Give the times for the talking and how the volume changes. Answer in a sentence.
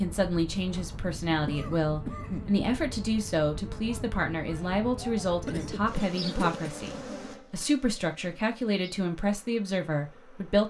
The talking can be heard from 0.0 to 10.6 s, at a steady volume.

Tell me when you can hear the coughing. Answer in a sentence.
You can hear the coughing from 1.4 to 2.5 s and from 5.5 to 6.7 s.